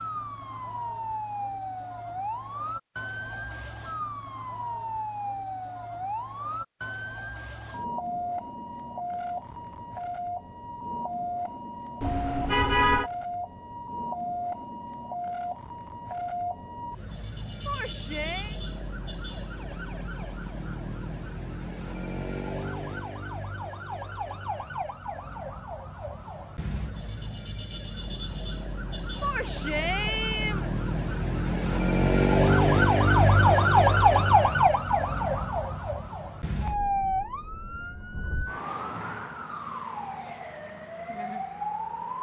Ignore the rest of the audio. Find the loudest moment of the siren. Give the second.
34 s.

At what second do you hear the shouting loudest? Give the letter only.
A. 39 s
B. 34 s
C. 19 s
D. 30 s
D.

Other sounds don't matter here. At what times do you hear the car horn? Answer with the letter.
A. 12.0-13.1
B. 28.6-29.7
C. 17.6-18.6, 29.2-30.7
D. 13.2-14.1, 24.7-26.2
A.